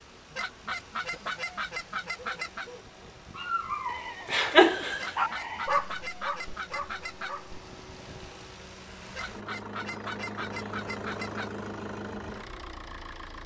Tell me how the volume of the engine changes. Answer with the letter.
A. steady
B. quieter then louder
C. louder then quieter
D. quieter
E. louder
E.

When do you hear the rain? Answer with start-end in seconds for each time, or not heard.
not heard.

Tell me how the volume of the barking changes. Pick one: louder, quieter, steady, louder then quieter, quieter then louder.
louder then quieter.